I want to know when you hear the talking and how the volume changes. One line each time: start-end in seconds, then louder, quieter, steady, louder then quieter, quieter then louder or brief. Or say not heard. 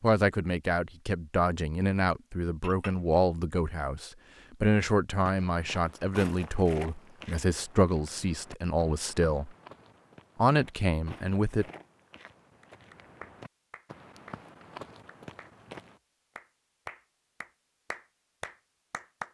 0.0-9.5 steady
10.3-11.7 brief.